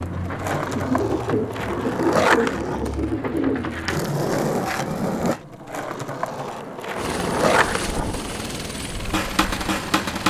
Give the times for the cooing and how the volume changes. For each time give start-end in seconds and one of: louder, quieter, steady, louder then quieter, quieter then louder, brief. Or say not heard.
0.0-4.0 steady.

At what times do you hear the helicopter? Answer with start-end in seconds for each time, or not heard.
7.0-10.2.